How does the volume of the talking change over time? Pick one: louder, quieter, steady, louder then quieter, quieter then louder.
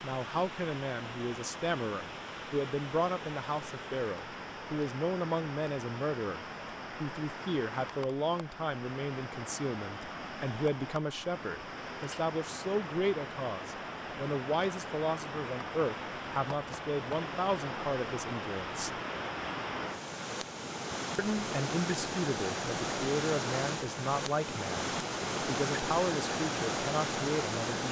steady.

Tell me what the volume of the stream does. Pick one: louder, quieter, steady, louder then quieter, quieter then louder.
louder.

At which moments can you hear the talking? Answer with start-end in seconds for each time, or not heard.
0.0-6.4, 7.0-19.0, 21.1-27.8.